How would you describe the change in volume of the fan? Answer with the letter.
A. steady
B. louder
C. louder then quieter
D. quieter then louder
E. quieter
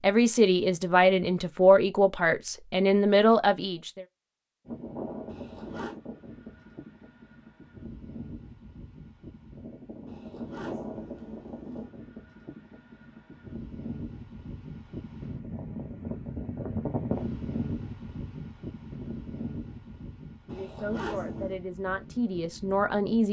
C.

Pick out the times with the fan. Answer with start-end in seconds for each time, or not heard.
4.7-23.2.